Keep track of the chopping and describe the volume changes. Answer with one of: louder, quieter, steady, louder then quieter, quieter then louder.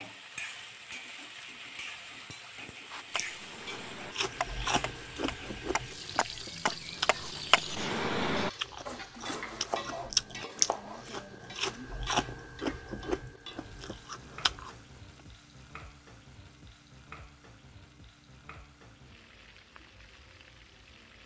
louder then quieter.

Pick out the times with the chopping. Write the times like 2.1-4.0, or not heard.
3.1-11.2.